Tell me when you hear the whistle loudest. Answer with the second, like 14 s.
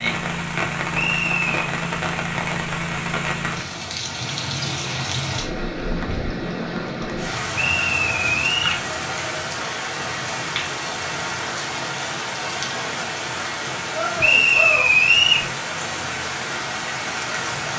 15 s.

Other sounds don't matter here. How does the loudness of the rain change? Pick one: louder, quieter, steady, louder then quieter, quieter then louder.
steady.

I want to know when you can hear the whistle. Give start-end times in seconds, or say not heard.
0.9-1.6, 7.5-8.8, 14.2-15.4.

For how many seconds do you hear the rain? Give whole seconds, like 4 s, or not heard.
18 s.